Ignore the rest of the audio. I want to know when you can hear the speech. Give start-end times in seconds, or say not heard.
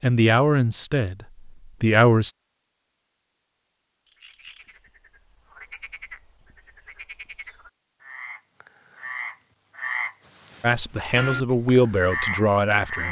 0.0-2.4, 10.6-13.0.